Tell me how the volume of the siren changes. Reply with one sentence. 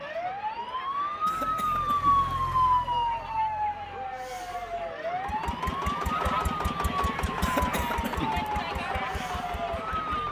The volume of the siren goes down.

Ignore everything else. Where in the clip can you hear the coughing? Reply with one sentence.
The coughing can be heard from 1.2 to 2.3 s and from 7.4 to 8.5 s.